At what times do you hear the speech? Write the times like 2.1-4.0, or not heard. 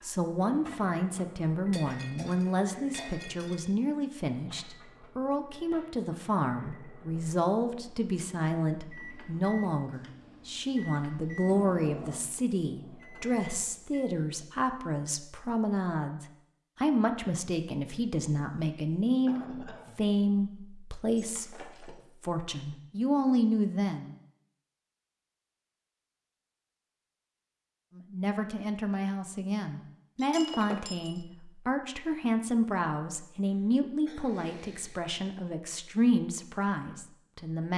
0.0-24.1, 27.9-37.7.